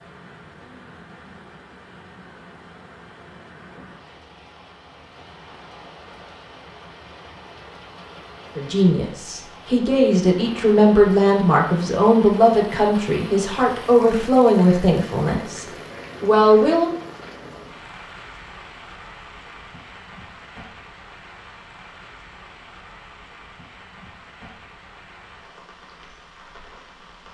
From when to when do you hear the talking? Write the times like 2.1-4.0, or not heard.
8.6-16.9.